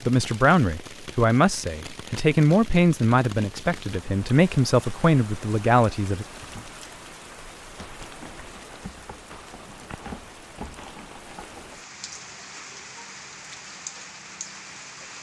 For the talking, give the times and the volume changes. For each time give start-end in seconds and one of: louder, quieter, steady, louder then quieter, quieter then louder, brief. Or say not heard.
0.0-6.2 steady.